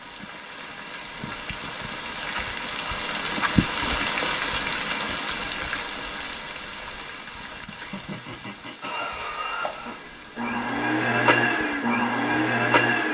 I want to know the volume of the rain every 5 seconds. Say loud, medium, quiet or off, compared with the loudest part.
loud, medium, quiet.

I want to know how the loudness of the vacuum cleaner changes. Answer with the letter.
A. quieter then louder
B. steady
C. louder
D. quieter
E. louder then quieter
C.